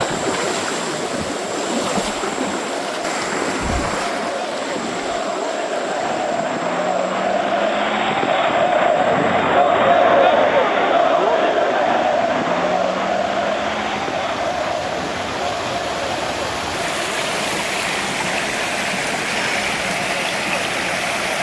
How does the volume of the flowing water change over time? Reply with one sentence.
The volume of the flowing water goes down, then up.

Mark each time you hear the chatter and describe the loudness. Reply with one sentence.
The chatter can be heard from 0.2 to 21.3 s, getting louder then quieter.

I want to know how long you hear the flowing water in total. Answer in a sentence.
The flowing water can be heard for 21 seconds in total.